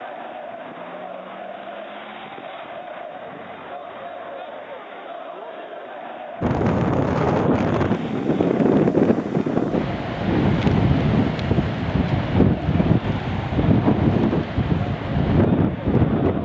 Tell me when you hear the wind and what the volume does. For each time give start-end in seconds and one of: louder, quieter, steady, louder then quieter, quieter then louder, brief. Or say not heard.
6.4-16.4 steady.